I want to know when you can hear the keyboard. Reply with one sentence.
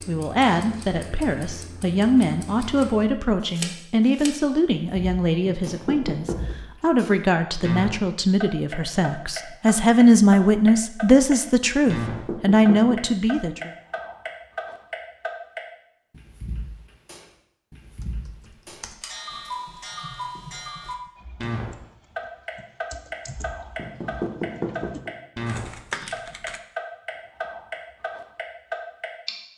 You can hear the keyboard from 17.9 to 26.6 s.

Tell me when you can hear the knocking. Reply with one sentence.
You can hear the knocking from 5.5 to 6.5 s, from 11.9 to 13.0 s and from 23.8 to 25.1 s.